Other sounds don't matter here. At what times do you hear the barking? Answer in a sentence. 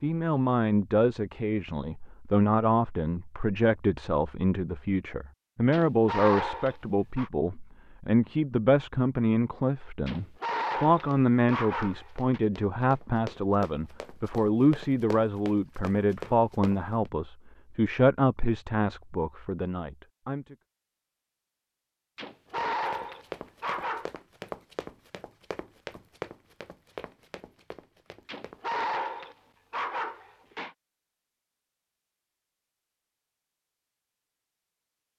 The barking can be heard from 5.7 to 7.3 s, from 10.1 to 12.4 s, from 22.1 to 24.1 s and from 28.2 to 30.8 s.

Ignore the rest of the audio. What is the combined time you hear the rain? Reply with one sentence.
The rain can't be heard in this clip.